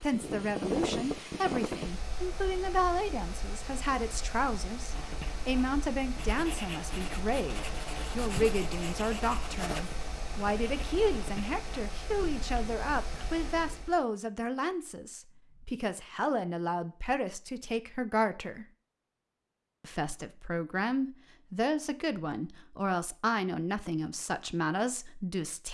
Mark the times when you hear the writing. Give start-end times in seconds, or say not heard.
4.9-13.8.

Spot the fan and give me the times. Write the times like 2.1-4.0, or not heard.
0.0-14.0.